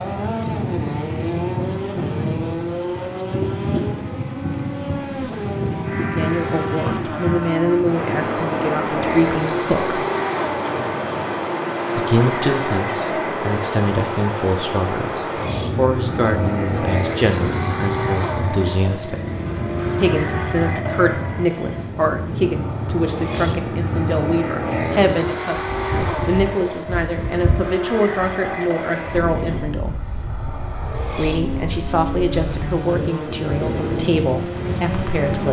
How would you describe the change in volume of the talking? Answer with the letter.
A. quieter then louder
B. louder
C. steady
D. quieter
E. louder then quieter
C.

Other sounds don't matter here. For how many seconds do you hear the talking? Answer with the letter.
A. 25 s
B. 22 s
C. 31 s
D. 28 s
A.